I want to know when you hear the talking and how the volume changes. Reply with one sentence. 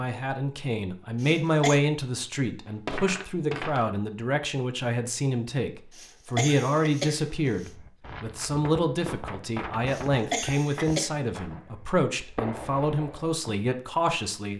The talking can be heard from 0.0 to 14.5 s, at a steady volume.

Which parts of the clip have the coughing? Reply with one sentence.
The coughing can be heard from 1.2 to 1.8 s, from 6.0 to 7.7 s and from 9.9 to 11.1 s.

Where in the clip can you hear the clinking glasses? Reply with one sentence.
The clinking glasses can be heard from 2.6 to 3.9 s.